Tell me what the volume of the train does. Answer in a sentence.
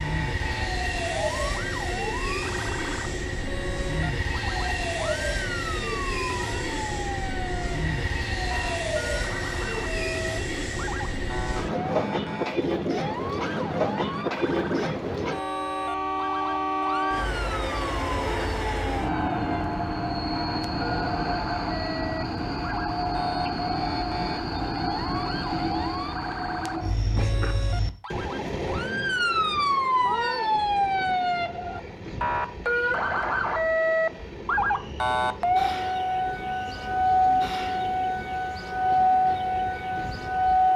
The loudness of the train goes down.